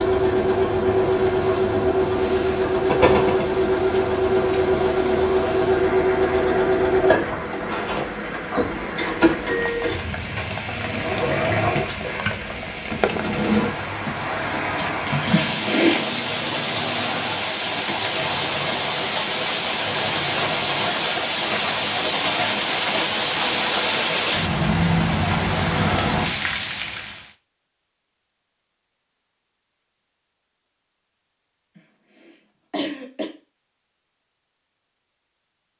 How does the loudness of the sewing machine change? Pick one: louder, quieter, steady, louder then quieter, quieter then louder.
quieter.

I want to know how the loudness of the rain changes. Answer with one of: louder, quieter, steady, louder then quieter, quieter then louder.
louder.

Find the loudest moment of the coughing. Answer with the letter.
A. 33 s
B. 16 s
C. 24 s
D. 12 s
B.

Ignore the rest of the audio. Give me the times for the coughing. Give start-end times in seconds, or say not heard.
15.3-16.2, 32.2-33.4.